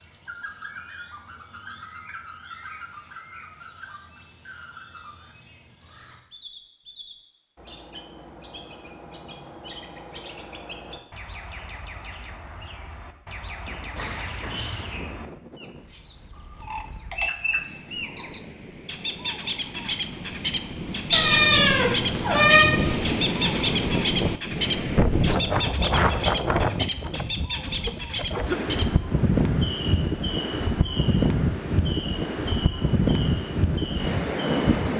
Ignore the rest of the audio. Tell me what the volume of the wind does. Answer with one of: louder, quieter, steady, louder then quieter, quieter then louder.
louder.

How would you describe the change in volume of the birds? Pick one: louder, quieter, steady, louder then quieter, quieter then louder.
louder then quieter.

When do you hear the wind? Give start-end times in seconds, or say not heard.
13.7-34.9.